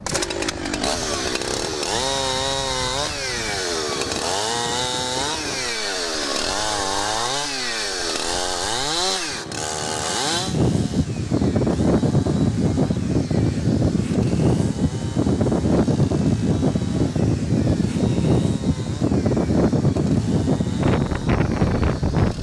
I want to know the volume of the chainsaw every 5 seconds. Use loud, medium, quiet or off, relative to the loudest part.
loud, loud, medium, quiet, quiet.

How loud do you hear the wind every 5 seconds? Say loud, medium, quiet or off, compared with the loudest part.
quiet, quiet, loud, loud, loud.